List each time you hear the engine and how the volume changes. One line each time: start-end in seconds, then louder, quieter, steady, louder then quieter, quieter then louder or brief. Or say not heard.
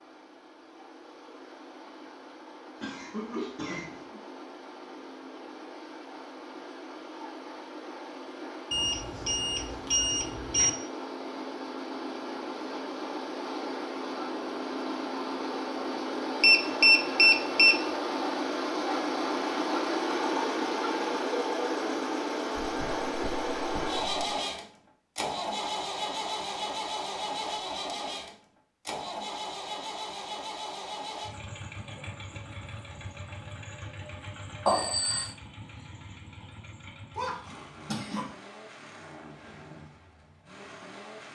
0.0-41.2 louder then quieter.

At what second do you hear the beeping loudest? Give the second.
17 s.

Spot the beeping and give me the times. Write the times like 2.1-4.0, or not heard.
8.7-10.7, 16.4-17.9, 34.6-35.3.